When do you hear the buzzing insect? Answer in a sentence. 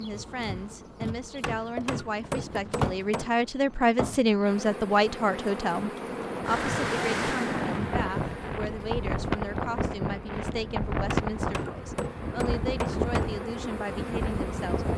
The buzzing insect can be heard from 0.0 to 14.9 s.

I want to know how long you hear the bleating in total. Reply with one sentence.
The bleating can't be heard in this clip.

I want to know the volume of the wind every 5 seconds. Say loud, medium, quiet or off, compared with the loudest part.
quiet, loud, loud.